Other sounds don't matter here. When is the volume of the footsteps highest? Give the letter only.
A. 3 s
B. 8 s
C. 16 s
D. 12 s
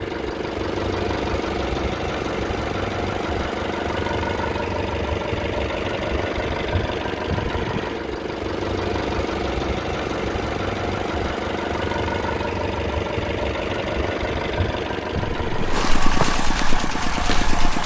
C.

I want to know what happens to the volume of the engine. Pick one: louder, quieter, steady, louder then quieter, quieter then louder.
steady.